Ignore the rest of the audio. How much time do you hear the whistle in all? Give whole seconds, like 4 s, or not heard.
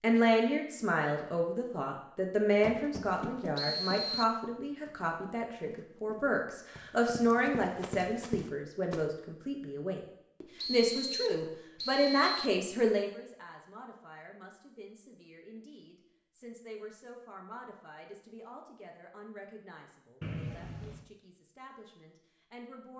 4 s.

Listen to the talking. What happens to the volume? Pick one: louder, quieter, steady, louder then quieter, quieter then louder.
quieter.